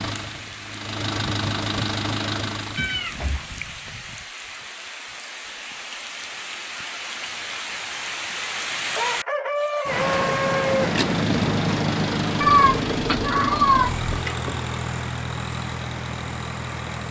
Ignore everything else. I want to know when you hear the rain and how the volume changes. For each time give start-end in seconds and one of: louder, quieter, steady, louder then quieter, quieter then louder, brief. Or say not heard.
0.0-17.0 louder then quieter.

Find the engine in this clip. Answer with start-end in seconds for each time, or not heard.
0.0-2.9, 10.6-17.0.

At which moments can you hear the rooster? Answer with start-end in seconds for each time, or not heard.
8.9-10.9.